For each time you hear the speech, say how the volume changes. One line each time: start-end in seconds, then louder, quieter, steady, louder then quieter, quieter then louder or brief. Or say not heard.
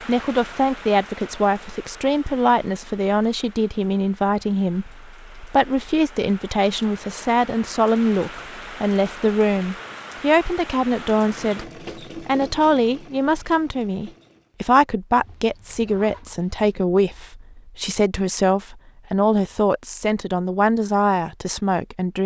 0.1-22.2 steady.